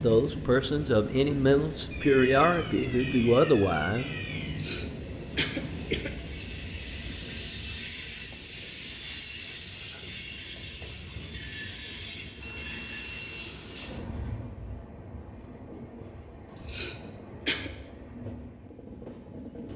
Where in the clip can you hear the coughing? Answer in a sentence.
You can hear the coughing from 4.5 to 6.1 s and from 16.6 to 17.7 s.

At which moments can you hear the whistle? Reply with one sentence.
You can't hear the whistle here.